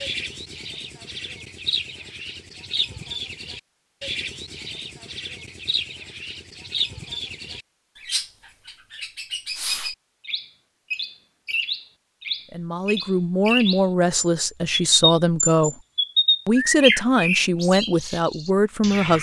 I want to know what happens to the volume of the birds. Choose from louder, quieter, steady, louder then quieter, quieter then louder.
louder.